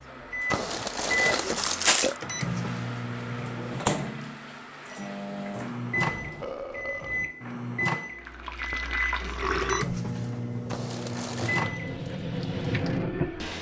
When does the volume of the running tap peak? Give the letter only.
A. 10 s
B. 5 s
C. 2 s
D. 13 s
D.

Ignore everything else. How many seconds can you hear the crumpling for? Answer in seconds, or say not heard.
3 s.